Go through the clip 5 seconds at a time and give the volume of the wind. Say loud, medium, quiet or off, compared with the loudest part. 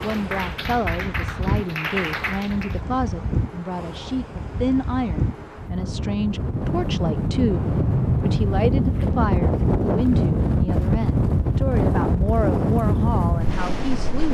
medium, loud, loud.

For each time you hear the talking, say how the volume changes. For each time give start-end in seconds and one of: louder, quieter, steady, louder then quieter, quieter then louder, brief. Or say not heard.
0.0-14.3 steady.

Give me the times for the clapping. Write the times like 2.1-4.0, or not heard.
0.0-2.9.